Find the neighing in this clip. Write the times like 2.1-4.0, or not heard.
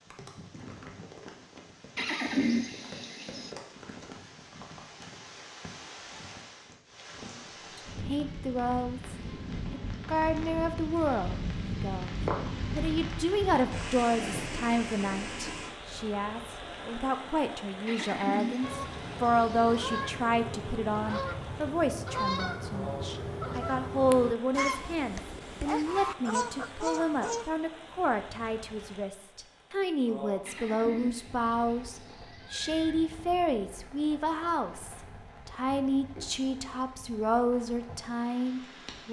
1.9-3.5, 17.9-20.2, 30.4-33.0.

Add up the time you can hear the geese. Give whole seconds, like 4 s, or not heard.
9 s.